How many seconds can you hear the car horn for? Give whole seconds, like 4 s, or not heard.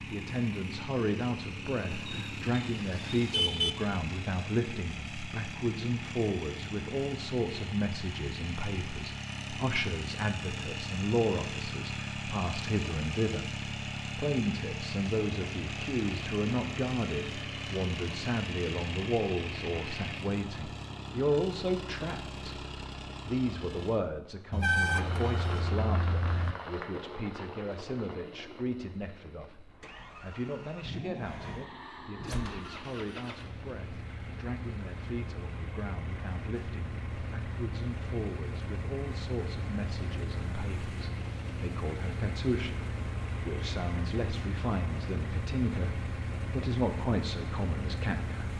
4 s.